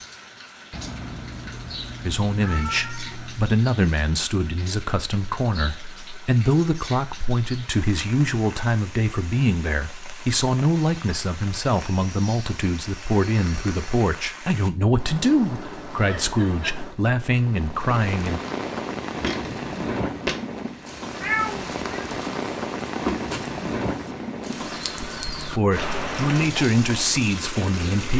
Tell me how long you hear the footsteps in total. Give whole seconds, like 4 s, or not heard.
6 s.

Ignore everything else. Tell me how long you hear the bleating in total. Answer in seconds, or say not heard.
not heard.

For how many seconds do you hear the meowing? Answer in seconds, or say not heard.
4 s.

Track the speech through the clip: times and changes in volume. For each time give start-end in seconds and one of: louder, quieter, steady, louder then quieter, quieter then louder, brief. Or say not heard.
2.0-18.4 steady
25.4-28.1 brief.